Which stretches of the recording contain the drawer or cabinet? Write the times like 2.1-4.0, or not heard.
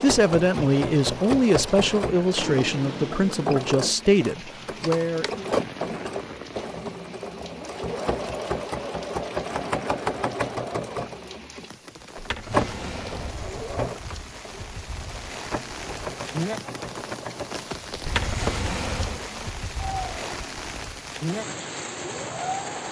2.4-3.6, 12.2-13.3, 18.0-19.2.